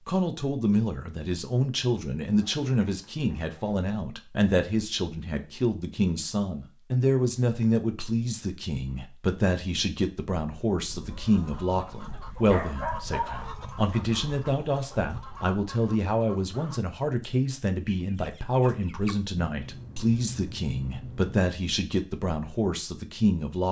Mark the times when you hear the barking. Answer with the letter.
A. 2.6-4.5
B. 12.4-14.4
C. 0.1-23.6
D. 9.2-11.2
B.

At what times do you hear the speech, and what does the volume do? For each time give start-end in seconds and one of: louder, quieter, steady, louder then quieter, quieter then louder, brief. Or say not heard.
0.1-23.6 steady.